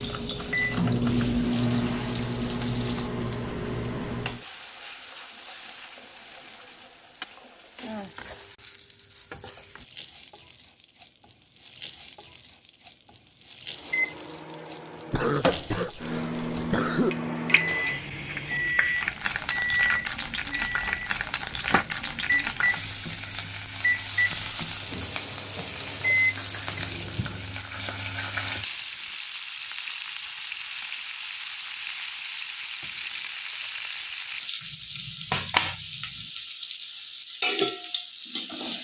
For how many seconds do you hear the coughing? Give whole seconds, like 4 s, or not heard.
2 s.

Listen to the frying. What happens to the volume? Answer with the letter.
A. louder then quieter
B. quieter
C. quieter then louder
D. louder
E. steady
D.